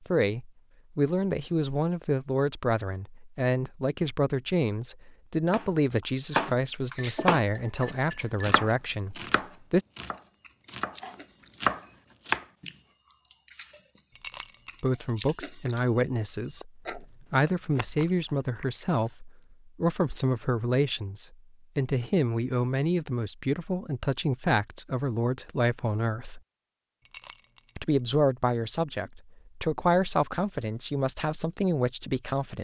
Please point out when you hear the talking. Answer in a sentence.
The talking can be heard from 0.1 to 9.8 s, from 14.8 to 26.4 s and from 27.8 to 32.6 s.